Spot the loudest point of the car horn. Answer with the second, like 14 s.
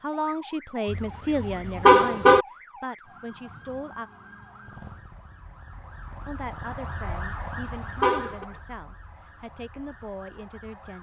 2 s.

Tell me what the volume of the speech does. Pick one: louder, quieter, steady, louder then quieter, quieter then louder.
quieter.